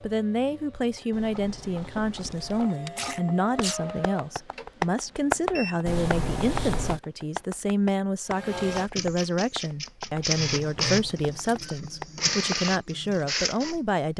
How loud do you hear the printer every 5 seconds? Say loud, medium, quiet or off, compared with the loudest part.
medium, medium, loud.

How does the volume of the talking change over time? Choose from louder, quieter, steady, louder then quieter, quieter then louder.
steady.